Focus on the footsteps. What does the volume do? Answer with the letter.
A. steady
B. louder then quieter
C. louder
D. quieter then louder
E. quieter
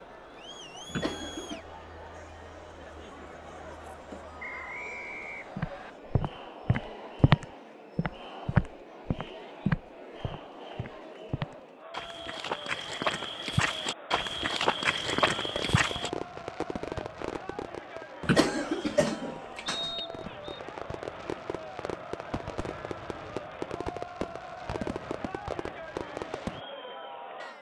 D.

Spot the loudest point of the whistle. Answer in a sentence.
The loudest moment of the whistle is at 20 seconds.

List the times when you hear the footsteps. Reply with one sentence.
You can hear the footsteps from 5.5 to 16.1 s.